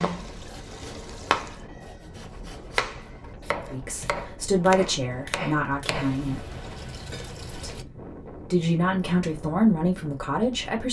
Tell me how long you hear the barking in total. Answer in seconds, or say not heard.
not heard.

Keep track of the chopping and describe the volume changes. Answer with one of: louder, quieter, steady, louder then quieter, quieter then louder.
quieter.